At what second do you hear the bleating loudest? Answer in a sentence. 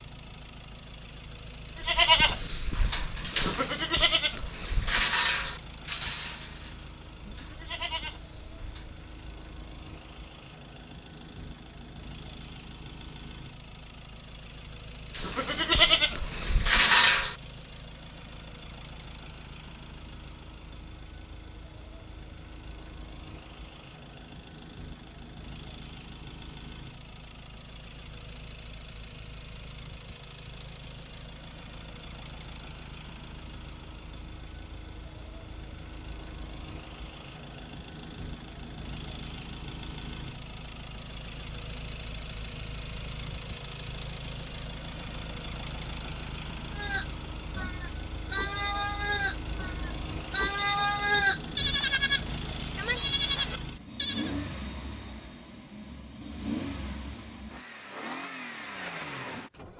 The volume of the bleating peaks at 17 seconds.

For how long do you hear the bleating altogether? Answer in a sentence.
You can hear the bleating for 17 seconds altogether.